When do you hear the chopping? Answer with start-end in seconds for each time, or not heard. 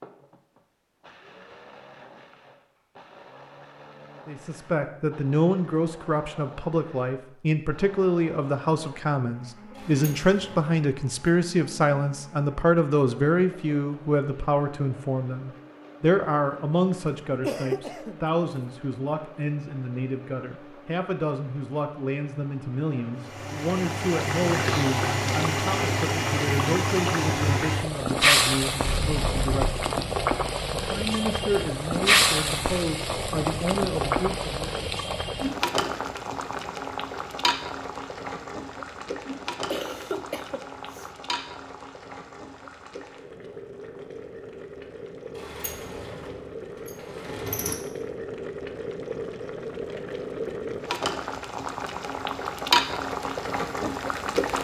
not heard.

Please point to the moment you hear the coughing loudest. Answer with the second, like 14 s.
18 s.